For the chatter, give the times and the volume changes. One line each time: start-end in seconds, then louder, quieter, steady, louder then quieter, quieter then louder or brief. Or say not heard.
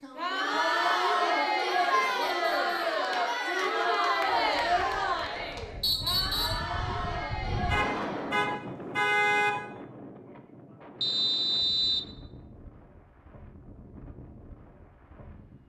0.0-8.4 quieter.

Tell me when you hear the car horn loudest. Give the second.
9 s.